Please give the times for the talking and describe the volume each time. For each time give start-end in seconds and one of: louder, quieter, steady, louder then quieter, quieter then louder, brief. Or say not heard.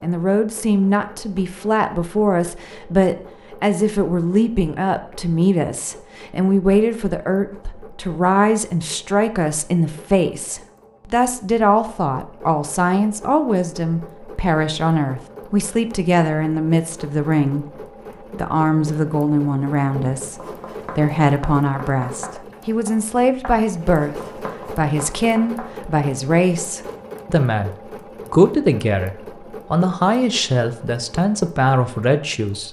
0.0-32.6 steady.